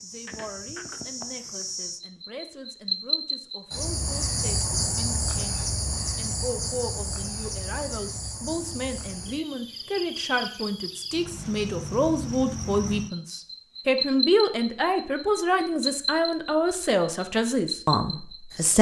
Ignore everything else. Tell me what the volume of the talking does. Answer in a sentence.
The loudness of the talking goes up.